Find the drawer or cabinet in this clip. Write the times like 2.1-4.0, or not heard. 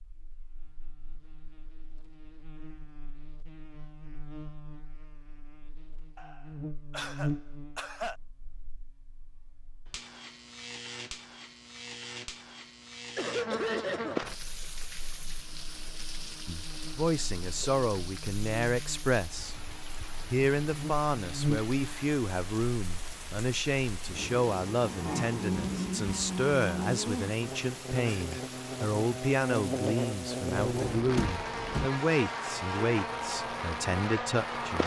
30.6-31.9.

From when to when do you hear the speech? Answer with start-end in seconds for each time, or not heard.
16.4-19.6, 20.3-34.8.